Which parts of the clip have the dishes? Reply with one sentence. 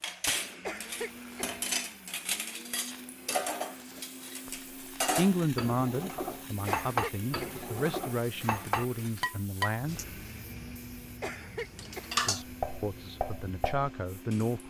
You can hear the dishes from 0.0 to 10.1 s and from 11.8 to 14.6 s.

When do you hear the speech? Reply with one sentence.
The speech can be heard from 4.5 to 10.2 s and from 12.2 to 14.6 s.